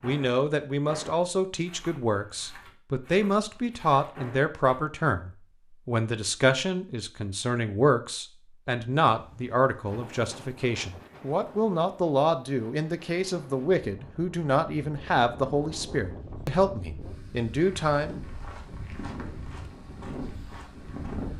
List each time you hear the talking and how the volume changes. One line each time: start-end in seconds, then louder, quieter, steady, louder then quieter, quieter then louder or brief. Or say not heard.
0.0-18.1 steady.